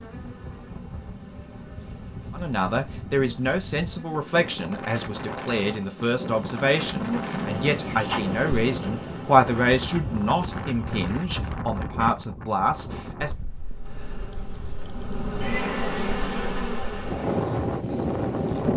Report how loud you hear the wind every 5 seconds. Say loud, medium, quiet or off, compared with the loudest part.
quiet, medium, medium, loud.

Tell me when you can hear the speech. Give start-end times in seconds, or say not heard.
2.3-13.3.